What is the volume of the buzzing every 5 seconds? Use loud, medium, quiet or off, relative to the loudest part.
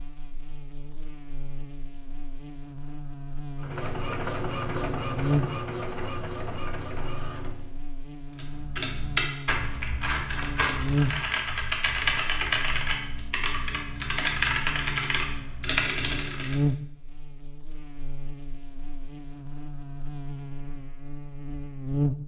medium, loud, loud, loud, loud.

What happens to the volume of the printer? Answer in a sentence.
The loudness of the printer goes down.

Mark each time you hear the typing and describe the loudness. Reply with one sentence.
The typing can be heard from 8.3 to 16.6 s, at a steady volume.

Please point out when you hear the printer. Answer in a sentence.
You can hear the printer from 3.5 to 7.8 s.